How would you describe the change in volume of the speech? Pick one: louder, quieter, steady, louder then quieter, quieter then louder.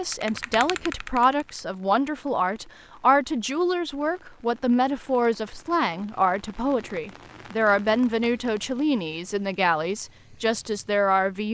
steady.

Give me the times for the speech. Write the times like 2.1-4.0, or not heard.
0.0-11.5.